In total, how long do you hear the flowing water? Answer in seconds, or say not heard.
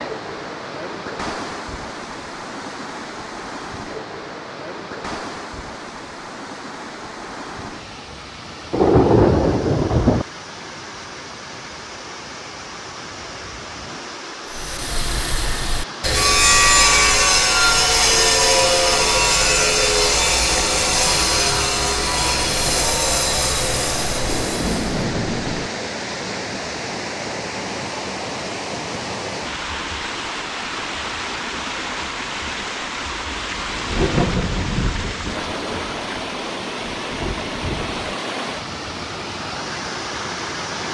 41 s.